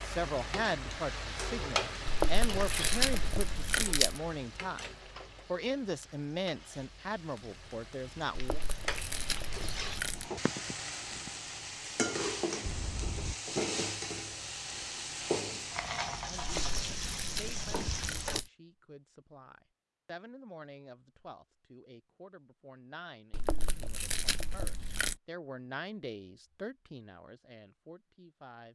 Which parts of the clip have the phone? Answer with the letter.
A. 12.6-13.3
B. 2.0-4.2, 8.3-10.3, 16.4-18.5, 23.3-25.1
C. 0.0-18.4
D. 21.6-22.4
A.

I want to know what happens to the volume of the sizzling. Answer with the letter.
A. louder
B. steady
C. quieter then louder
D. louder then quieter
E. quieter
C.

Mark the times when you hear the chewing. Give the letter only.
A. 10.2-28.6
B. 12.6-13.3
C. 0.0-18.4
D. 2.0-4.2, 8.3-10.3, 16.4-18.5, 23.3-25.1
D.